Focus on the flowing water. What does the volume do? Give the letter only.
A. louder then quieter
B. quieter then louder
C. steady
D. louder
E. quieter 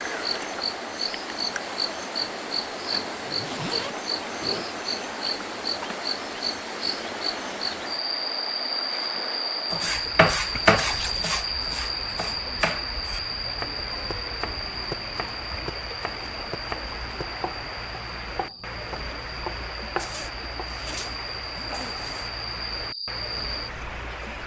C.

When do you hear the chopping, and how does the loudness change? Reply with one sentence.
You can hear the chopping from 9.7 to 20.7 s, getting quieter.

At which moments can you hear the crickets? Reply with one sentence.
The crickets can be heard from 0.0 to 24.4 s.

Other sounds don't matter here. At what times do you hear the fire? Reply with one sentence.
You can't hear the fire here.